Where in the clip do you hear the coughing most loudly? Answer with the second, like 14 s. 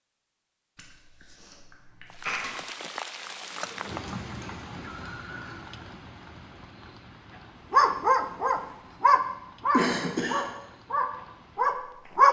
10 s.